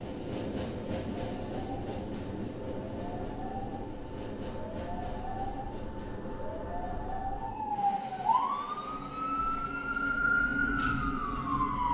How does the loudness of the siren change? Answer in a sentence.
The volume of the siren goes up.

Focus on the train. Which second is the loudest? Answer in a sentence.
The loudest moment of the train is at 1 second.